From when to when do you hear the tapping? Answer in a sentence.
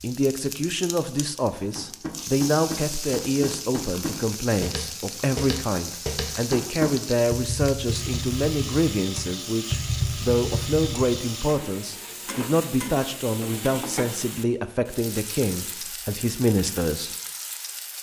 You can hear the tapping from 1.8 to 11.2 s.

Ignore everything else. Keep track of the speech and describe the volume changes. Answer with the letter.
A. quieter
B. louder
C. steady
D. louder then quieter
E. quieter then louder
C.